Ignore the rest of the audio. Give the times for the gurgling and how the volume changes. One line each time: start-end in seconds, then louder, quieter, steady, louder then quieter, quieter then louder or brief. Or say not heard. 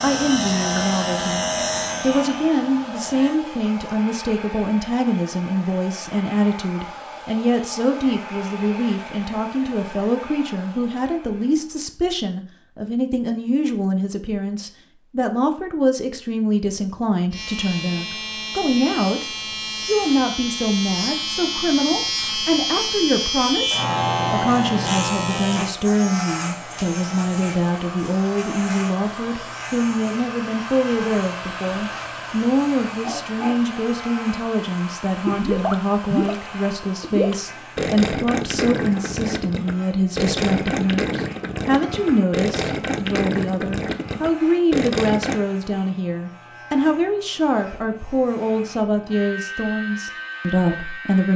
35.2-36.4 brief
37.0-45.4 steady.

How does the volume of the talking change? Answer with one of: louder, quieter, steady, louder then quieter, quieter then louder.
steady.